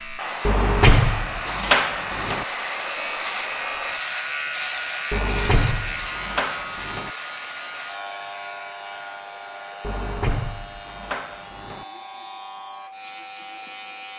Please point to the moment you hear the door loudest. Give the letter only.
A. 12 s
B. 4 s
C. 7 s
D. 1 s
D.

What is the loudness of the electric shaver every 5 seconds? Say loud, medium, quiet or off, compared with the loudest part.
loud, loud, medium.